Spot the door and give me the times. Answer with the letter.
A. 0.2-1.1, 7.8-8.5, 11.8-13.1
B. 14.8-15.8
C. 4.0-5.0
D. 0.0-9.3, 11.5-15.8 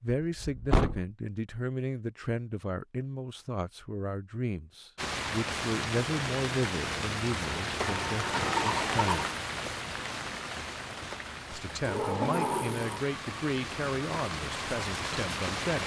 A.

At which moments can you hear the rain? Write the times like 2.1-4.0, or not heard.
5.0-15.8.